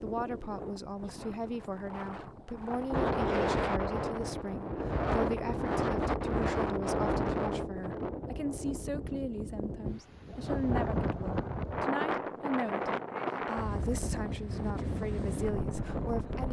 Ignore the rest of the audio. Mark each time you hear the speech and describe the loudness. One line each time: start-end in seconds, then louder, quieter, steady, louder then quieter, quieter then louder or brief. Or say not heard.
0.0-16.4 steady.